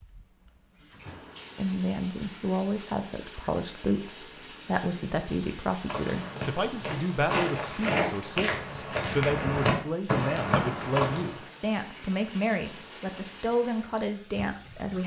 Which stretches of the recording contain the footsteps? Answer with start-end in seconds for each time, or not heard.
5.8-11.4.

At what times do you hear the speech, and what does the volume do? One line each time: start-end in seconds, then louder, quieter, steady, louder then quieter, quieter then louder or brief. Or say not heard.
1.6-15.0 steady.